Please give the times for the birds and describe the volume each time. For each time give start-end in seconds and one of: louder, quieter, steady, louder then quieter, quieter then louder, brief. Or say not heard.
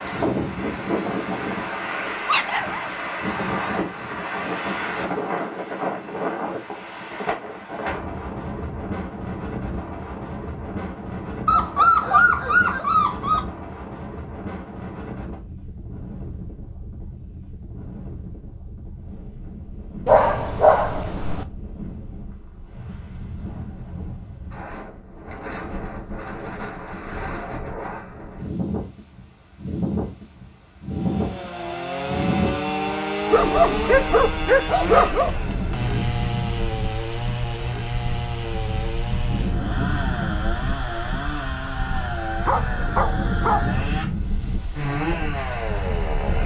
not heard.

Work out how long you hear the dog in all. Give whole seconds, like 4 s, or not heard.
8 s.